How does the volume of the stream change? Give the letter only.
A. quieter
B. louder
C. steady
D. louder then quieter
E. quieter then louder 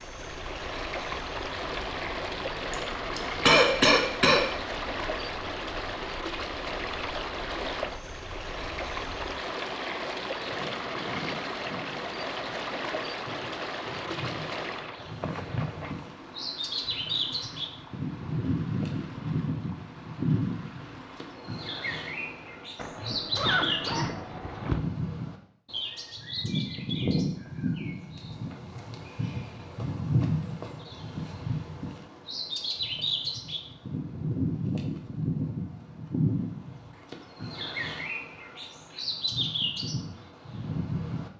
A.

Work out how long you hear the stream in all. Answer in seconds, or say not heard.
23 s.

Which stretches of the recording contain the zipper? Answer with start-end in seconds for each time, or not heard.
15.2-15.9, 22.8-24.8.